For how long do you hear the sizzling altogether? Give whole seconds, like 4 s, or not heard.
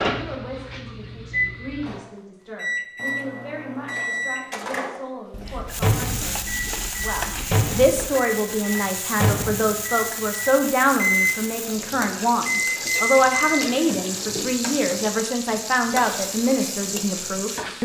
12 s.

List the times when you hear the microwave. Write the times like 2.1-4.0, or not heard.
0.0-11.4, 12.5-14.9.